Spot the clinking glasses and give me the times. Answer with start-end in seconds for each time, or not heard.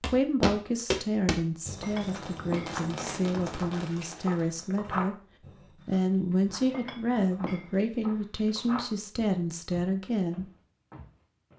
1.8-2.8, 6.7-7.8.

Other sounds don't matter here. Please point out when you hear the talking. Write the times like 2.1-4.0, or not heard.
0.1-5.2, 5.8-10.5.